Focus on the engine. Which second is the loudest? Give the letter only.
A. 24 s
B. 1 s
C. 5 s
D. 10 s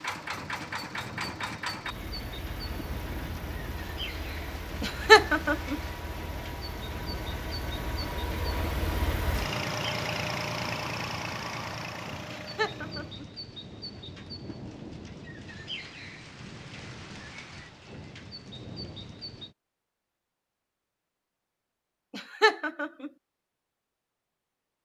D.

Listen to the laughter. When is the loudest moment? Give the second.
5 s.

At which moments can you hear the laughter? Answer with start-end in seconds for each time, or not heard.
4.8-5.8, 12.3-13.2, 22.1-23.1.